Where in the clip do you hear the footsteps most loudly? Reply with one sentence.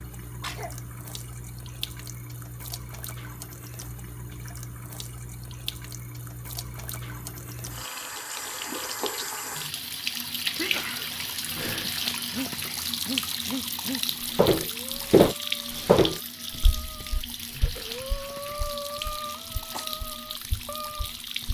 The loudest moment of the footsteps is at 15 seconds.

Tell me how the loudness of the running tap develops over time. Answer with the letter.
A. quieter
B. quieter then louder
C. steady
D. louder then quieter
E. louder
D.